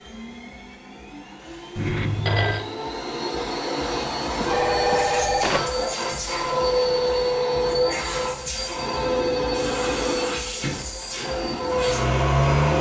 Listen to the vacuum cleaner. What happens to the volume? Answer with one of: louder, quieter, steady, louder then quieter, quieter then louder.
louder.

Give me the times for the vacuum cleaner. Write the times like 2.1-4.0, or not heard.
0.0-12.7.